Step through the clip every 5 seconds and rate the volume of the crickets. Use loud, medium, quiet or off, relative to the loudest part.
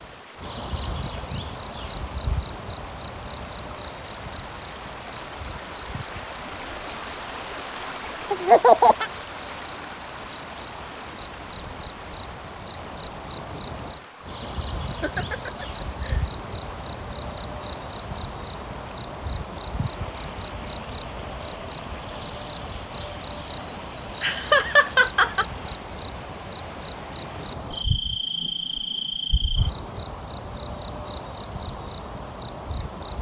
loud, medium, loud, loud, loud, loud, loud.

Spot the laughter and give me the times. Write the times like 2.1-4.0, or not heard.
8.3-9.1, 15.0-16.2, 24.2-25.4.